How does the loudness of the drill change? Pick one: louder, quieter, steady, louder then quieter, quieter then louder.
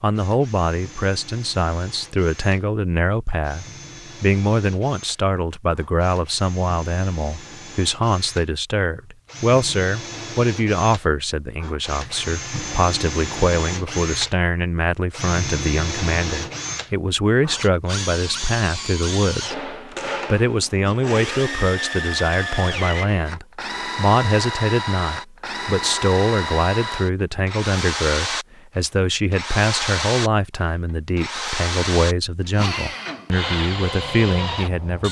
louder.